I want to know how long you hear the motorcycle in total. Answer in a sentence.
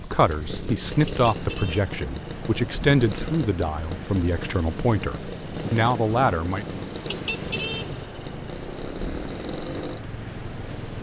You can hear the motorcycle for 11 seconds altogether.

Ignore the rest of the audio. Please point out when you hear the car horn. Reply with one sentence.
You can hear the car horn from 1.1 to 1.9 s and from 7.0 to 8.0 s.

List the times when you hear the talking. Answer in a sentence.
You can hear the talking from 0.0 to 6.8 s.